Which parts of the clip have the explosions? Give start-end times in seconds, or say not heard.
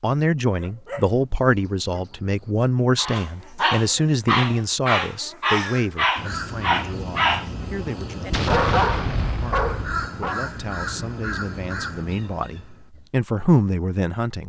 8.3-9.8.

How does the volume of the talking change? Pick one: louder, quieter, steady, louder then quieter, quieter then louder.
quieter then louder.